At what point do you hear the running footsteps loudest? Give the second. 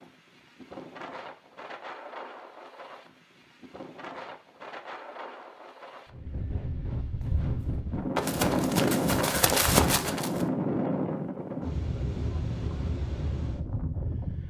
10 s.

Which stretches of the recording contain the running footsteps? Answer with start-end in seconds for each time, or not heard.
7.0-10.4.